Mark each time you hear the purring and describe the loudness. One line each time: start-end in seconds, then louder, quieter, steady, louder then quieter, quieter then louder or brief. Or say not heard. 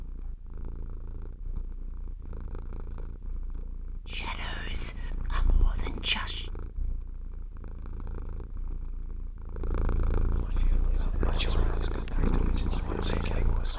0.0-13.7 louder.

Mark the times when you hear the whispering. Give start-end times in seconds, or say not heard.
4.1-6.5, 10.3-13.7.